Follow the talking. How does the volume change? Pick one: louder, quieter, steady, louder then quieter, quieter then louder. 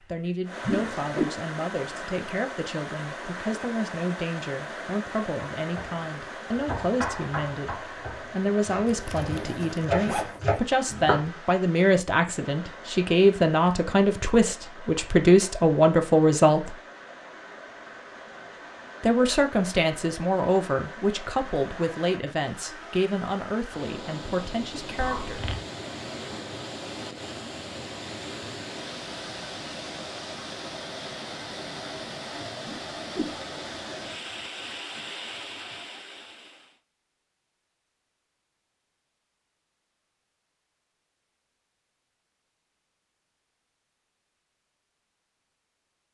louder then quieter.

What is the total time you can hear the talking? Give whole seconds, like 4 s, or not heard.
23 s.